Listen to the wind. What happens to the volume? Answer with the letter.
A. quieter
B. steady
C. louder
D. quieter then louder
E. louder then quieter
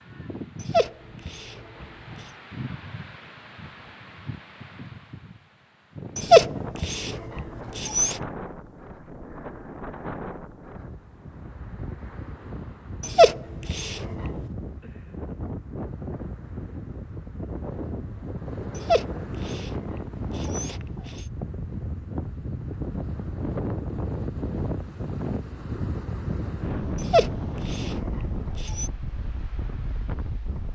C.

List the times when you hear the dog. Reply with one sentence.
You can hear the dog from 0.6 to 2.3 s, from 6.2 to 8.2 s, from 13.0 to 14.3 s, from 18.8 to 21.2 s and from 26.9 to 28.9 s.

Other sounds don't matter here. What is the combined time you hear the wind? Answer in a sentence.
The wind can be heard for 31 seconds in total.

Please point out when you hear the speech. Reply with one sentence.
You can't hear the speech here.